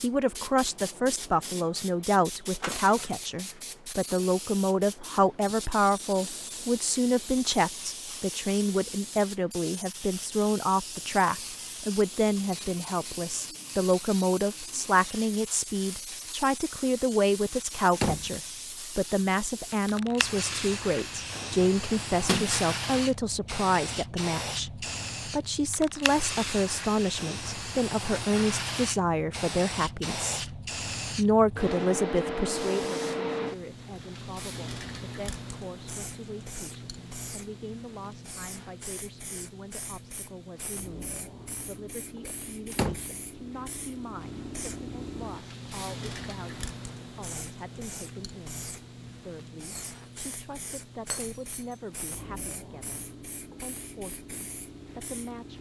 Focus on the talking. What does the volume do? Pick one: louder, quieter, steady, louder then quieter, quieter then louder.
quieter.